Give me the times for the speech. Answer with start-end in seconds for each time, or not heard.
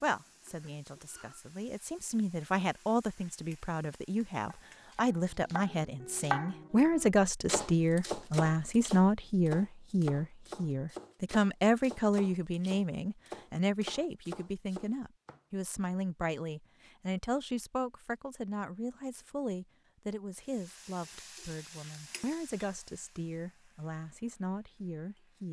0.0-25.4.